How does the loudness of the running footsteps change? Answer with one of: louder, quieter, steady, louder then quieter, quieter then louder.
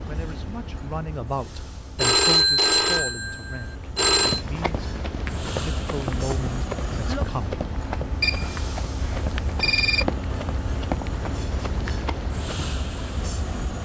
steady.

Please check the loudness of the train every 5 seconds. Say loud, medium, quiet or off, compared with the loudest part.
medium, loud, loud.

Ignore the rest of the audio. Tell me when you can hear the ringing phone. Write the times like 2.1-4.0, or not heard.
1.9-4.5, 8.2-10.1.